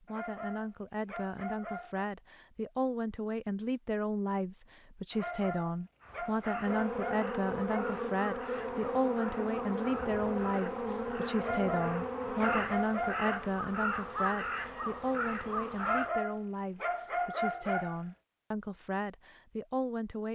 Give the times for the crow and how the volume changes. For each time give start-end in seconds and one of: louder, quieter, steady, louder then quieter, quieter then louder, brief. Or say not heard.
6.0-16.1 louder.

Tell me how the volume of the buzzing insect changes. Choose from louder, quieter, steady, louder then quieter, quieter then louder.
quieter.